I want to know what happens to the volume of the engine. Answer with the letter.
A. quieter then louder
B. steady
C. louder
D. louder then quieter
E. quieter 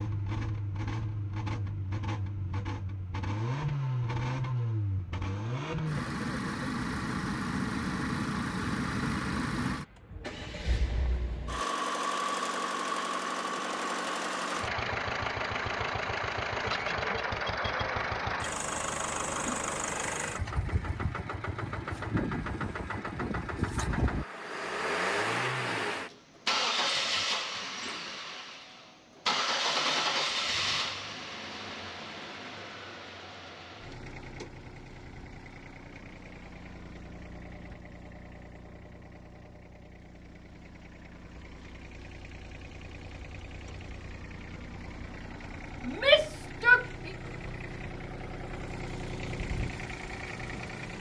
E.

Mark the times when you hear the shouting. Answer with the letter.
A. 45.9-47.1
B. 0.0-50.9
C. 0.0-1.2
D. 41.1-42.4
A.